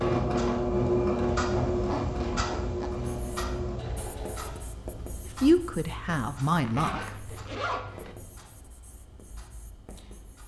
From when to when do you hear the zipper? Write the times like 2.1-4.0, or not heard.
1.4-2.9, 6.7-8.2.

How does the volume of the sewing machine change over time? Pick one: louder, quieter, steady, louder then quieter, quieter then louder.
quieter.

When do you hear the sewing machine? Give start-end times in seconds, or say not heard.
0.0-4.7.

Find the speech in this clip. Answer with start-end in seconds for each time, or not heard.
5.4-7.2.